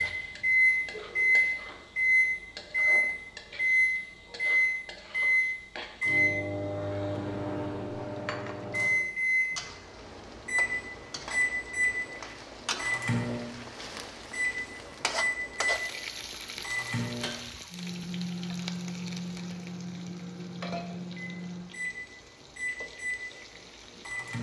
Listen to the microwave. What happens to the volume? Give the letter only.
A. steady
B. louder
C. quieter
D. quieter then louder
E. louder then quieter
C.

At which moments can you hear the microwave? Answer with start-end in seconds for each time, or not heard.
0.0-24.3.